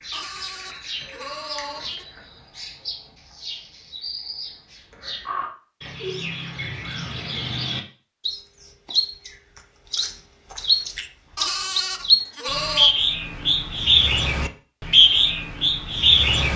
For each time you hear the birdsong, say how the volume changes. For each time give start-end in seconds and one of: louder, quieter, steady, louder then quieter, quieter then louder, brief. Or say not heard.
0.0-16.5 louder.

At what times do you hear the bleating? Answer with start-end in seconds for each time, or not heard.
0.1-2.0, 11.3-12.9.